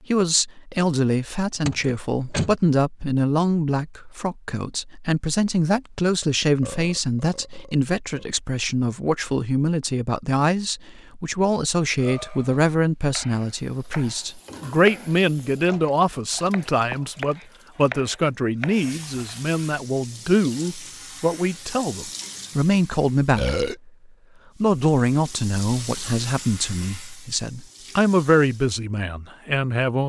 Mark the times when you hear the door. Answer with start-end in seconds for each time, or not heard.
1.6-2.5, 15.7-16.4.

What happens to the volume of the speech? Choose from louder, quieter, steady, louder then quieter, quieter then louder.
steady.